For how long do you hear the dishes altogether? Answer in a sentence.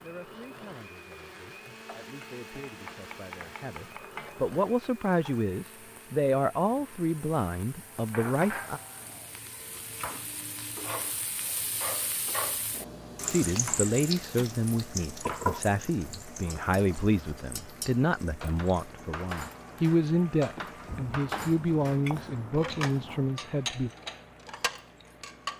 The dishes can be heard for 9 seconds in total.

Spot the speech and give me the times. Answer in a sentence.
The speech can be heard from 0.0 to 8.8 s and from 13.3 to 23.9 s.